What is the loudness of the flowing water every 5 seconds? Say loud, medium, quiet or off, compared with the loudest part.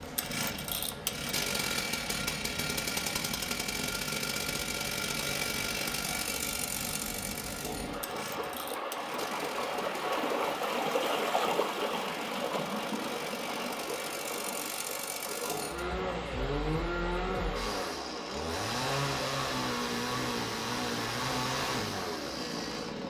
medium, medium, loud, medium, medium.